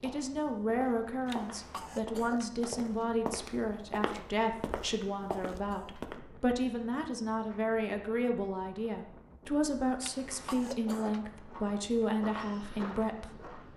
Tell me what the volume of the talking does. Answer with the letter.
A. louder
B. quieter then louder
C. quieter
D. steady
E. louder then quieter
D.